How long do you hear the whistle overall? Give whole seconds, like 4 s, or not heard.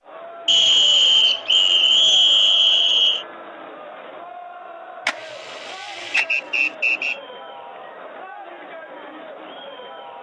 4 s.